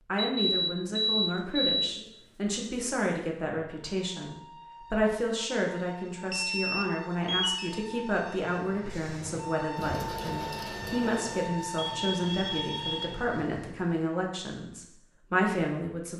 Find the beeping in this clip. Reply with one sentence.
The beeping can be heard from 0.1 to 1.9 s, from 6.3 to 7.7 s and from 11.8 to 13.0 s.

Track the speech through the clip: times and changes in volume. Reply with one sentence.
The speech can be heard from 0.1 to 16.1 s, at a steady volume.